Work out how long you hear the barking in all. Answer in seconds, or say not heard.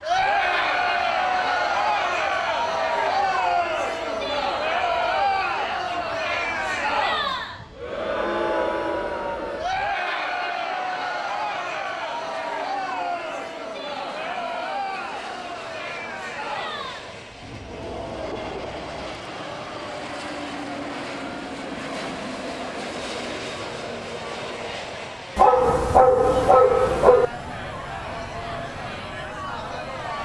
2 s.